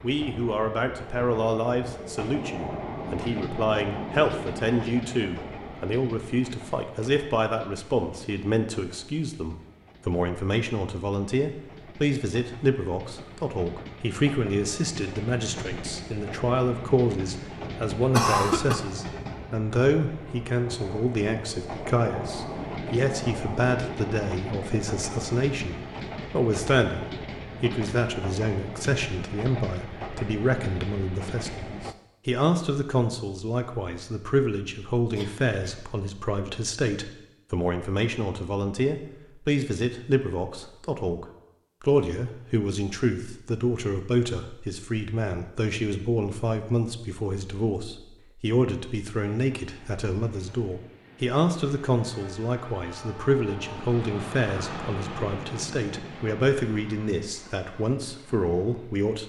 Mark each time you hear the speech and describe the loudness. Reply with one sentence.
You can hear the speech from 0.0 to 59.2 s, at a steady volume.